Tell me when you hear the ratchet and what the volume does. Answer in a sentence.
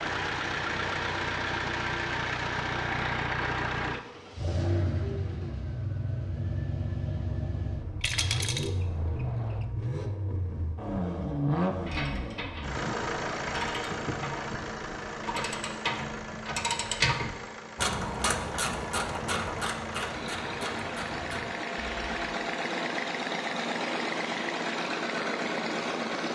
The ratchet can be heard from 11.7 to 22.1 s, getting louder then quieter.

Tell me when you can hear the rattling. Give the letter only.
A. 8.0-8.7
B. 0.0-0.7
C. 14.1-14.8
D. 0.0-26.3
A.